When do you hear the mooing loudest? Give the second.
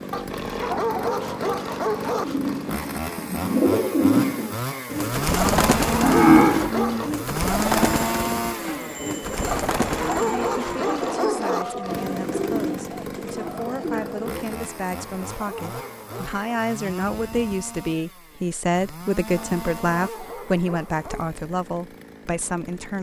6 s.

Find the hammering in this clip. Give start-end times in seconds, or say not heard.
not heard.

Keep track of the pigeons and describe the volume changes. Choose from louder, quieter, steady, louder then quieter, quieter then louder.
quieter.